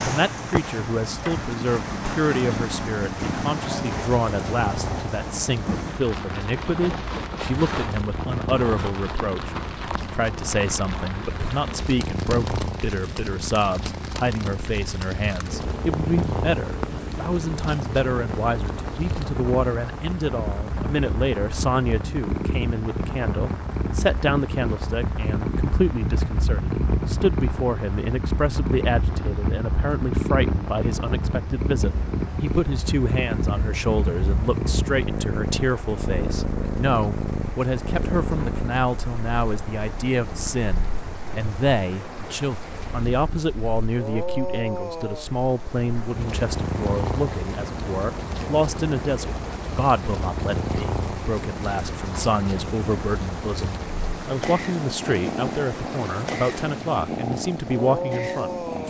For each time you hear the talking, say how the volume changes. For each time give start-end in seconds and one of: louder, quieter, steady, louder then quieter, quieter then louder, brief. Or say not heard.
0.0-58.8 steady.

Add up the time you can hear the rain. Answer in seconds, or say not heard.
59 s.